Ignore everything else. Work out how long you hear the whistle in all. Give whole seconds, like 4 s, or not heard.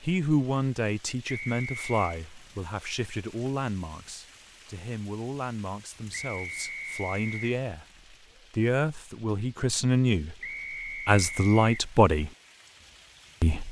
4 s.